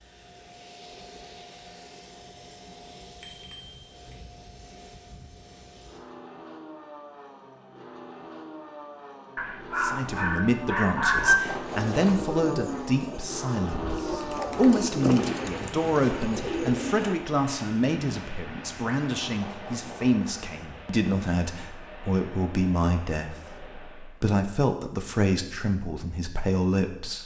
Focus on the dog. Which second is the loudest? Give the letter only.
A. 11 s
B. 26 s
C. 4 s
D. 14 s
A.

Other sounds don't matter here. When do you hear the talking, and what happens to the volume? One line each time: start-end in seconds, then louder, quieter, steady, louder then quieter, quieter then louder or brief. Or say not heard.
9.8-27.2 steady.